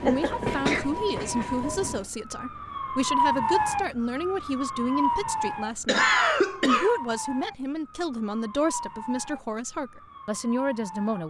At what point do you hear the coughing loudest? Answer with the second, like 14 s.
6 s.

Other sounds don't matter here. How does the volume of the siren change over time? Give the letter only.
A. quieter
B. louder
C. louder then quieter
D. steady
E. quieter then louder
C.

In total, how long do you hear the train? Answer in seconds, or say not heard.
2 s.